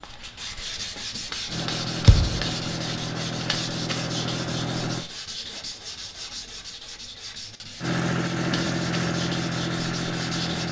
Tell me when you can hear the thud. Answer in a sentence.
The thud can be heard from 2.0 to 2.5 s.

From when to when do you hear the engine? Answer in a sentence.
The engine can be heard from 1.4 to 5.0 s and from 7.8 to 10.6 s.